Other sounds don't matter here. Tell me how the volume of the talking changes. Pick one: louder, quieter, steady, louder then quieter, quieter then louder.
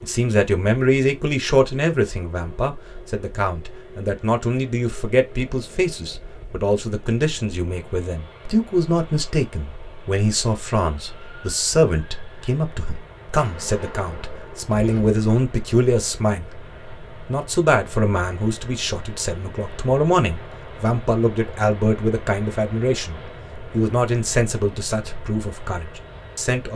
steady.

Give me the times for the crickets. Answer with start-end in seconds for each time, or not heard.
not heard.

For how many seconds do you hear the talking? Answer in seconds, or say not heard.
26 s.